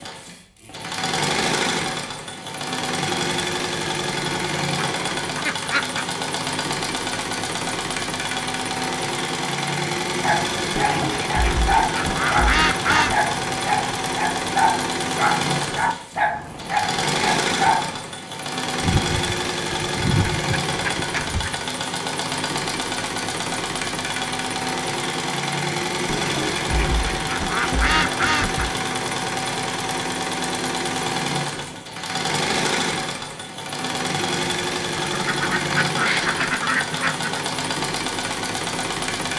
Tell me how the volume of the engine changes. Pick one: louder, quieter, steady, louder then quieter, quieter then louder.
steady.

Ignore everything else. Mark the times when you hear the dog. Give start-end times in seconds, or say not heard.
10.2-18.1.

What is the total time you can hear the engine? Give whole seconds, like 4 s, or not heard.
39 s.